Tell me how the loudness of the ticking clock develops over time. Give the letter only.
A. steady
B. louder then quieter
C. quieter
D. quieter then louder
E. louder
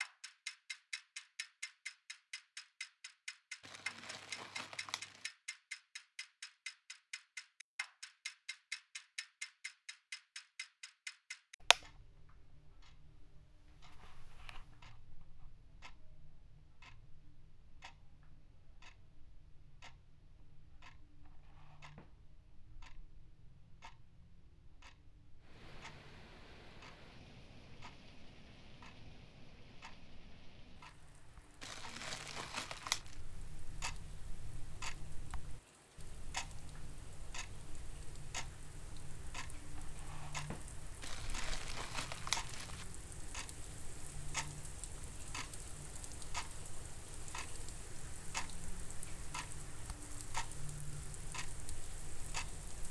D.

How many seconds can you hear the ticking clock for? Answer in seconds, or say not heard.
53 s.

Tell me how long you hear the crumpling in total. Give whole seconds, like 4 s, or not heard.
5 s.